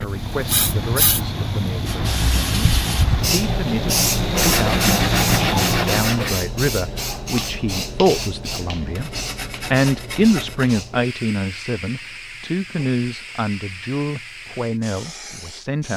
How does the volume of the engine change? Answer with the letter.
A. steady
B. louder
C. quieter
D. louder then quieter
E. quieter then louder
B.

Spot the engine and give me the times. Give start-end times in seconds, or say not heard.
0.0-6.0.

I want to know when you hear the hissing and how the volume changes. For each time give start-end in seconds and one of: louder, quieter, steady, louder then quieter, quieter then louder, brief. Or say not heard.
0.0-15.9 quieter.